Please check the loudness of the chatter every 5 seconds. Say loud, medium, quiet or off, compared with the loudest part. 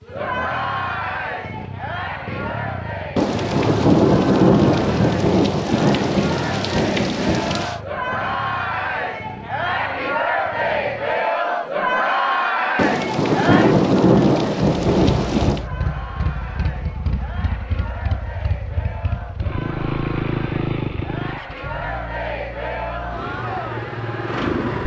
medium, medium, loud, quiet, medium.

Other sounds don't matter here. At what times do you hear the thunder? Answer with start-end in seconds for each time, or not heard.
3.1-7.8, 12.8-15.7.